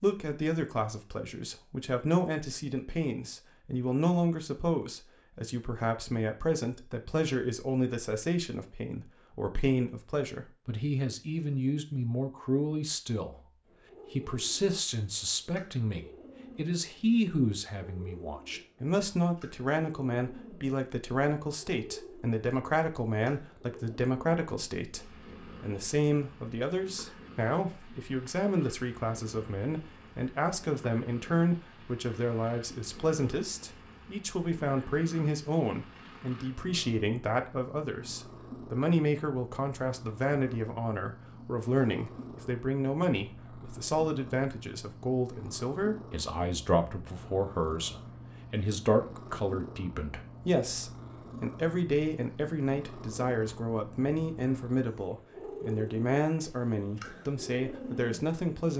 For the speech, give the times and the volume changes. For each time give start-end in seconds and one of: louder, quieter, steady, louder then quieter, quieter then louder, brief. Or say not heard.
0.0-58.7 steady.